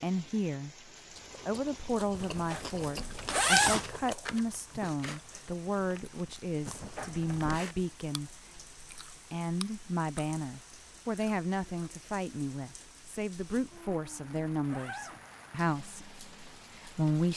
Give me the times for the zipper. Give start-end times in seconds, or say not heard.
2.2-3.9, 6.7-7.6, 13.6-15.2.